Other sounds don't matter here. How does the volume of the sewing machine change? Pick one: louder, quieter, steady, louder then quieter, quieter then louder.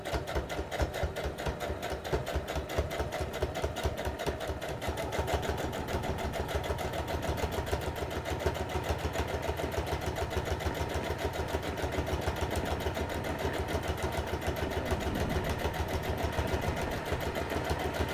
steady.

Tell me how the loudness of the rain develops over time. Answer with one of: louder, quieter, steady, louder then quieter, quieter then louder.
louder.